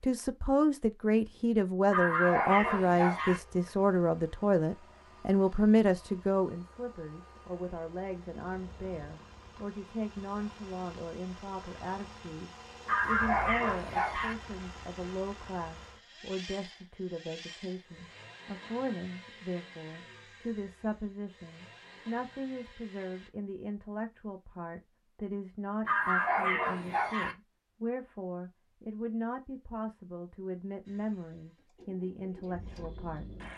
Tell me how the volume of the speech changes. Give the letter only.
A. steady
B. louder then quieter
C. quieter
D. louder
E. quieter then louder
C.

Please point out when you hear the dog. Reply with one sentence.
You can hear the dog from 1.9 to 3.4 s, from 12.8 to 14.3 s and from 25.9 to 27.4 s.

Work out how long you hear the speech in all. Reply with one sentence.
The speech can be heard for 33 seconds in total.